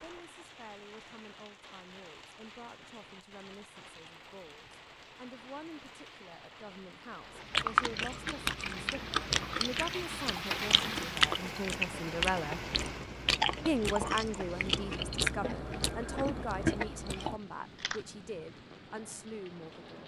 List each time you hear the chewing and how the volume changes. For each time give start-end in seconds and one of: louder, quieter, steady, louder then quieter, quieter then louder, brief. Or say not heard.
7.4-18.0 steady.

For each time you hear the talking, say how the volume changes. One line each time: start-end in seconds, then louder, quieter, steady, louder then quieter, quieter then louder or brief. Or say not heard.
0.0-12.6 louder
13.7-20.0 quieter.